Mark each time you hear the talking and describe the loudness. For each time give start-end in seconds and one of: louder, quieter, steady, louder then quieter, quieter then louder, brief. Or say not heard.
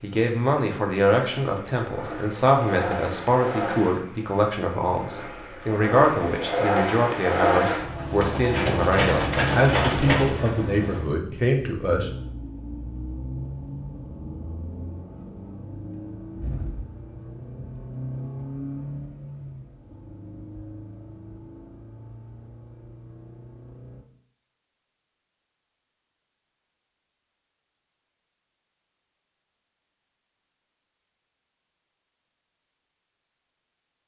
0.0-12.1 steady.